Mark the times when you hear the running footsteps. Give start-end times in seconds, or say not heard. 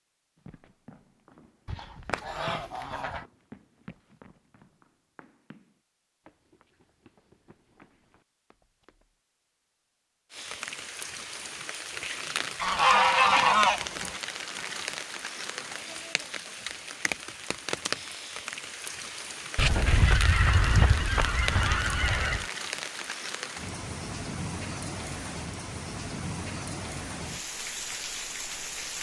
0.3-9.2.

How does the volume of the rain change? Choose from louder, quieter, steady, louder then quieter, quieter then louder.
steady.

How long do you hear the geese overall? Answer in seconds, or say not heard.
6 s.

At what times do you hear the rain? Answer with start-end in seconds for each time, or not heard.
10.3-28.9.